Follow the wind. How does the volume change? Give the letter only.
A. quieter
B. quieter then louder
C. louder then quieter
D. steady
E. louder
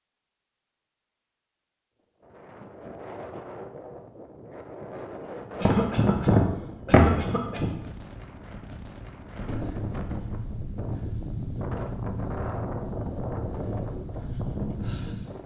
E.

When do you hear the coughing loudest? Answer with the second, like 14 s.
7 s.